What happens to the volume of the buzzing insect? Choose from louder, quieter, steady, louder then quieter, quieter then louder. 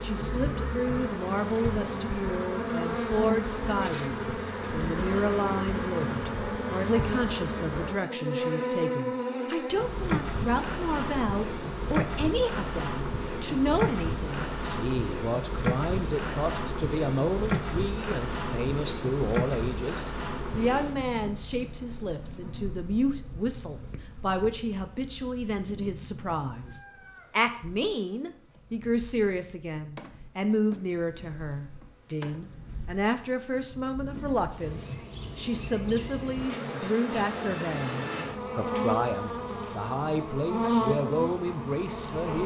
quieter then louder.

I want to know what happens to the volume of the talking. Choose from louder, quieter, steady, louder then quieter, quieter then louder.
steady.